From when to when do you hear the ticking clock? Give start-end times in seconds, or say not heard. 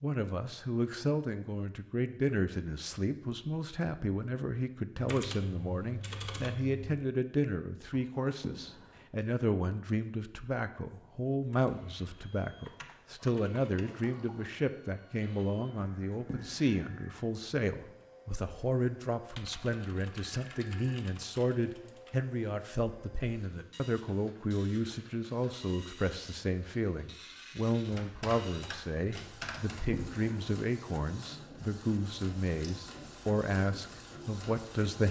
not heard.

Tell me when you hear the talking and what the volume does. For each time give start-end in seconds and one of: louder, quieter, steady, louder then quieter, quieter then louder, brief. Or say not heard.
0.0-35.0 steady.